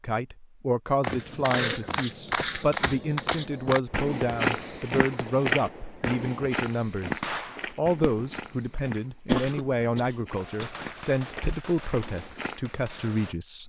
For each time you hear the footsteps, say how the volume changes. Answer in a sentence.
The footsteps can be heard from 1.0 to 12.6 s, getting quieter.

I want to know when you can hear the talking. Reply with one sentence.
You can hear the talking from 0.0 to 13.6 s.